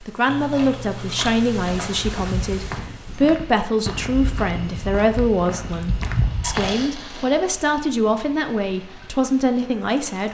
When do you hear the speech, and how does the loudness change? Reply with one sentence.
The speech can be heard from 0.0 to 10.3 s, at a steady volume.